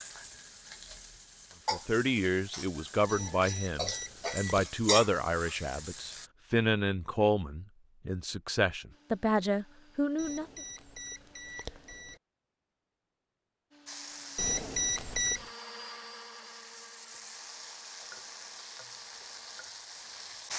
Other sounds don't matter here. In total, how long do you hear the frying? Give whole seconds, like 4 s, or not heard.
13 s.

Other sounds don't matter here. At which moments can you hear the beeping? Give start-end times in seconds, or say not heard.
3.0-4.7, 10.2-12.2, 14.3-15.5.